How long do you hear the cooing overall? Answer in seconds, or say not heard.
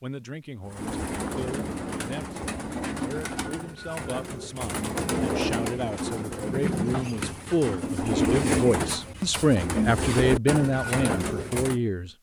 11 s.